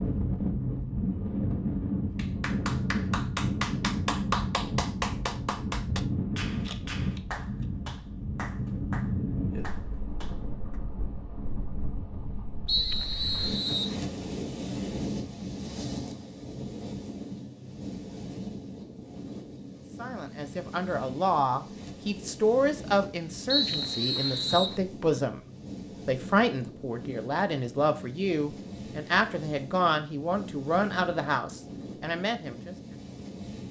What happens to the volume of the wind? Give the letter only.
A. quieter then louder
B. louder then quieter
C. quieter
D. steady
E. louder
C.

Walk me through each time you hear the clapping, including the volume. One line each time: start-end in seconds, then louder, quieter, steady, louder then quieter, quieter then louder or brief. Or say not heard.
2.1-10.8 quieter.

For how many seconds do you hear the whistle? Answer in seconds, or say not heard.
3 s.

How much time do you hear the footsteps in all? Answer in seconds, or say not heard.
not heard.